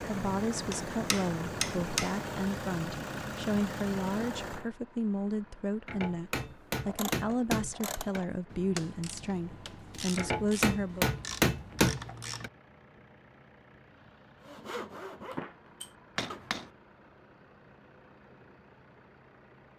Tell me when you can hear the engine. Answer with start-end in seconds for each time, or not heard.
0.0-19.7.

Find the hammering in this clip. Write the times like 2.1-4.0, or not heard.
0.7-2.2, 5.8-8.2, 10.2-12.5, 16.1-16.7.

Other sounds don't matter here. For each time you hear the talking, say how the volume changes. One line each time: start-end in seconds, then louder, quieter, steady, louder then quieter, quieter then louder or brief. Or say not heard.
0.0-11.1 steady.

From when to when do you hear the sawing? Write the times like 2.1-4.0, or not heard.
14.4-16.4.